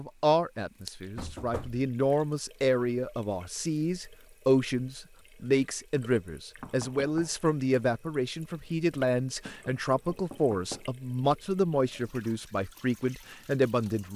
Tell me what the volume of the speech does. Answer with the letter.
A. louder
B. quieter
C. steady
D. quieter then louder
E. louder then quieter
C.